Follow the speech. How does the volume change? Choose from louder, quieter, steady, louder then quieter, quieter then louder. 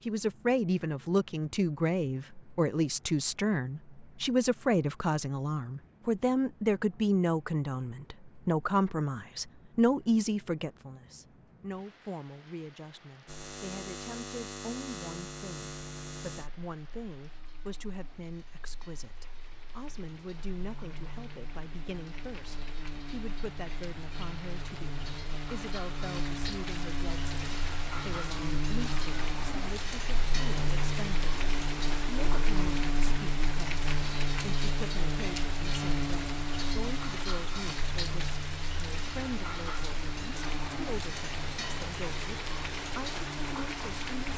quieter.